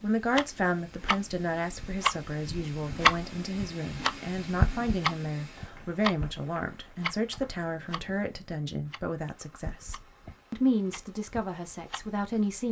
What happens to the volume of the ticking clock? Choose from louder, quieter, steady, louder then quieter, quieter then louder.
louder then quieter.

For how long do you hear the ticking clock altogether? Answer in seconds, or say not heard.
12 s.